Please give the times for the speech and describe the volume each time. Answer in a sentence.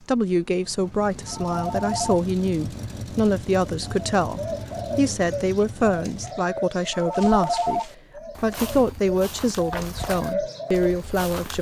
The speech can be heard from 0.1 to 11.5 s, at a steady volume.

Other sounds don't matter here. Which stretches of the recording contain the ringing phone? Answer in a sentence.
You can hear the ringing phone from 1.2 to 2.2 s and from 6.9 to 7.8 s.